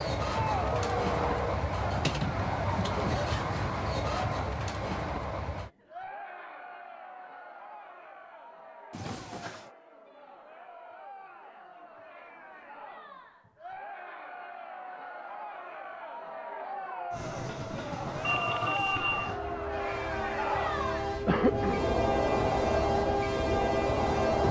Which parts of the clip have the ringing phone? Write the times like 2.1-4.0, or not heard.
0.7-1.4, 8.9-9.7, 18.2-19.4.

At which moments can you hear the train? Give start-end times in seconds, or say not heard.
0.0-5.7, 17.1-24.4.